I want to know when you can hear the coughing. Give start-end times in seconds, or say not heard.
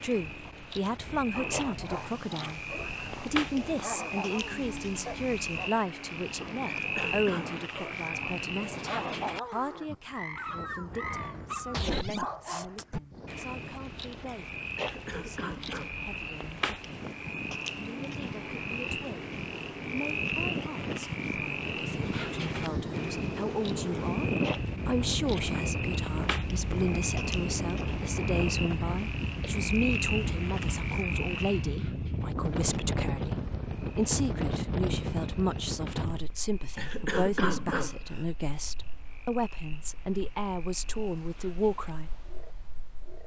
6.7-7.7, 14.8-15.9, 36.8-38.2.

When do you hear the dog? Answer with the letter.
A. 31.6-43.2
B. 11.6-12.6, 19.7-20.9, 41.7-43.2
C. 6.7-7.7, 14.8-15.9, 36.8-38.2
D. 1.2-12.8
D.